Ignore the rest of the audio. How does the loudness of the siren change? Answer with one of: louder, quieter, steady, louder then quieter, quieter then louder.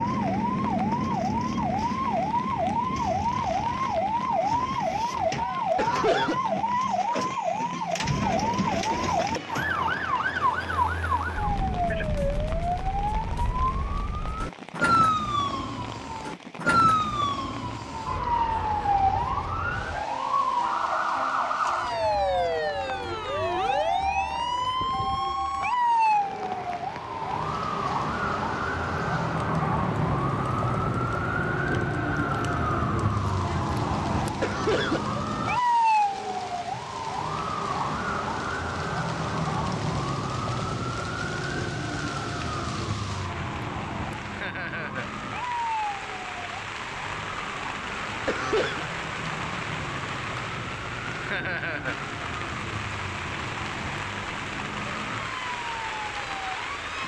quieter.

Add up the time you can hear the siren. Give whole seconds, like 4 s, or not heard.
57 s.